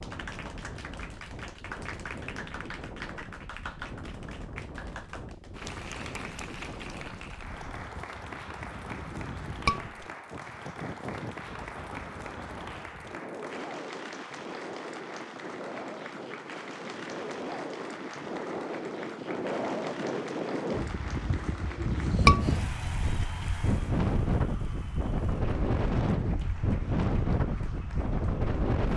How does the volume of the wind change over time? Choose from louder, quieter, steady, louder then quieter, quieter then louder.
louder.